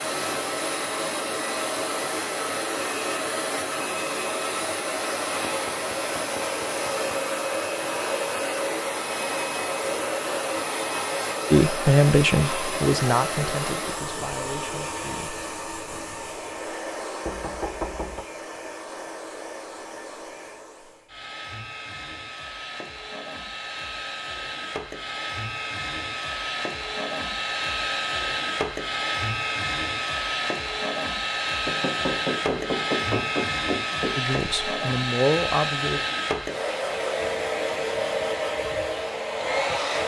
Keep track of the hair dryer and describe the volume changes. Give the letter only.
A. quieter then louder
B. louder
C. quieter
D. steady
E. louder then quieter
A.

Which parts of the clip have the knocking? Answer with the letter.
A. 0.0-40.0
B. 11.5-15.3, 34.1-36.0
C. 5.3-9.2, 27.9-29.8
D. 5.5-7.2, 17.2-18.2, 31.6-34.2
D.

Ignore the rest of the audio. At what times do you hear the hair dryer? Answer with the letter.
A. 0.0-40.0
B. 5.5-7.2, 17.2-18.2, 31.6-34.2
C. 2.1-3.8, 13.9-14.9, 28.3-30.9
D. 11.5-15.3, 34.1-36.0
A.